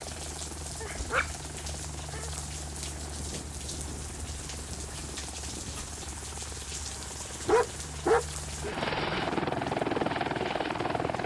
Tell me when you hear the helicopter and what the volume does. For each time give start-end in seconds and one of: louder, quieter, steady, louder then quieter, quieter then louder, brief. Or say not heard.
0.0-11.2 louder.